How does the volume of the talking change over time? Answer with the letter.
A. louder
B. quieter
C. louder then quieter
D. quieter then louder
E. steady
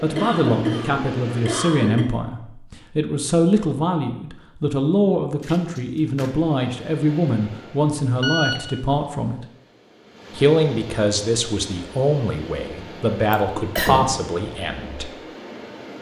E.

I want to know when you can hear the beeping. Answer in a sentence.
You can hear the beeping from 8.2 to 8.7 s.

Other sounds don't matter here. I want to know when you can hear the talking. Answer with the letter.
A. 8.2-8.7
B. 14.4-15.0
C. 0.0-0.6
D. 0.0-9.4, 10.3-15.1
D.